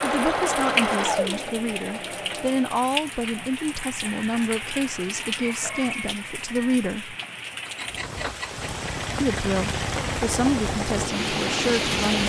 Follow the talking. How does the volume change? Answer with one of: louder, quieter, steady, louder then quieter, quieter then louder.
steady.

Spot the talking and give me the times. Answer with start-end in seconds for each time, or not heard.
0.0-7.2, 9.2-12.2.